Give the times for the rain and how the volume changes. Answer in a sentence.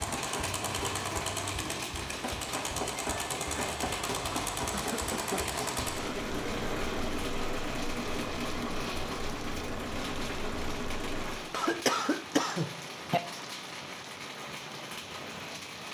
You can hear the rain from 0.0 to 15.8 s, at a steady volume.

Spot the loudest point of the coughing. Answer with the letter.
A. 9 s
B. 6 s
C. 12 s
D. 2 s
C.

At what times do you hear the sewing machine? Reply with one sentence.
The sewing machine can be heard from 0.0 to 11.4 s.